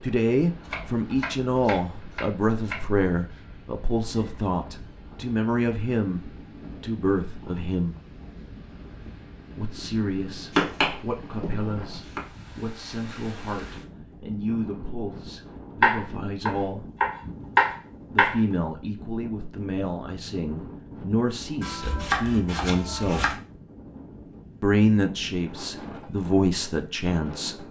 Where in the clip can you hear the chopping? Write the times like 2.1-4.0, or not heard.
0.7-2.8, 10.5-12.2, 15.8-18.4, 21.6-23.4.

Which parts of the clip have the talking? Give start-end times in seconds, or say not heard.
0.0-8.0, 9.6-16.9, 18.1-23.3, 24.6-27.6.